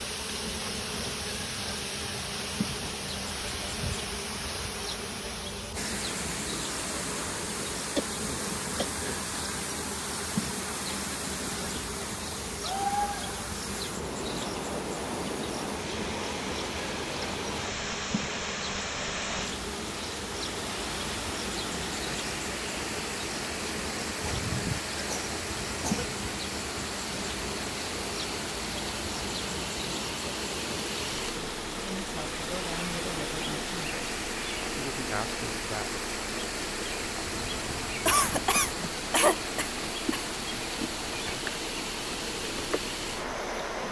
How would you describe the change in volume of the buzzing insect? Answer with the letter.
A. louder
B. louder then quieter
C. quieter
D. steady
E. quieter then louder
D.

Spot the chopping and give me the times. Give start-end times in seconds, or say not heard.
not heard.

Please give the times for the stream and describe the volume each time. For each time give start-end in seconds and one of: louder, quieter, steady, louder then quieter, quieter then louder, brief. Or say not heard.
0.0-43.8 steady.